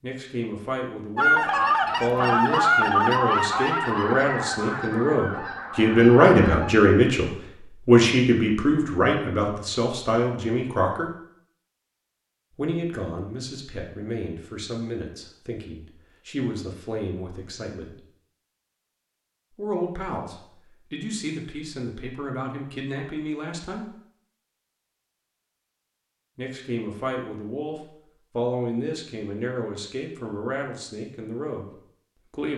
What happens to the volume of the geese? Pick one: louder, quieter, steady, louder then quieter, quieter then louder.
quieter.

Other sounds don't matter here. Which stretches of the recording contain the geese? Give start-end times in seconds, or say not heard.
1.1-6.7.